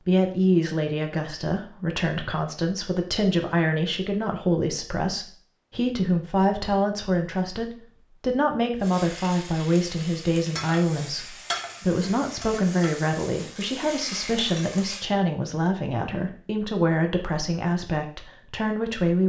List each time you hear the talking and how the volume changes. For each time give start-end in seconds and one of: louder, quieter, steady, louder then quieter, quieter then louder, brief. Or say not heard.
0.1-19.2 steady.